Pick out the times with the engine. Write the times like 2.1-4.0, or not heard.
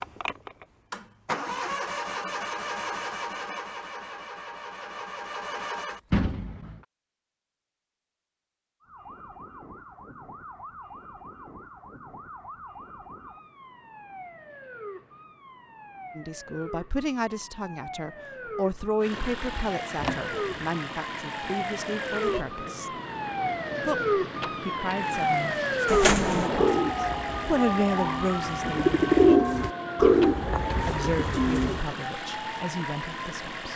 0.0-6.0, 19.0-33.7.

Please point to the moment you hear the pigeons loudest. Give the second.
29 s.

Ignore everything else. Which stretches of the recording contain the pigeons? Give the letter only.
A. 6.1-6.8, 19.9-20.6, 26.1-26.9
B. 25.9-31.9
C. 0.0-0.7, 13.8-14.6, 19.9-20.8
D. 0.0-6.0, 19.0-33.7
B.